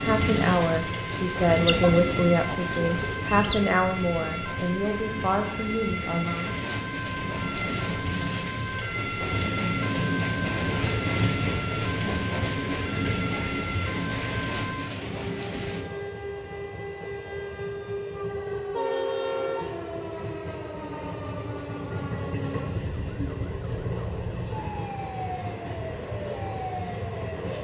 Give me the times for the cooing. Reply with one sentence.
You can hear the cooing from 1.6 to 3.6 s.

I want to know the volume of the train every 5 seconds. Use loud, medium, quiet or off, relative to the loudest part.
loud, loud, loud, medium, medium, medium.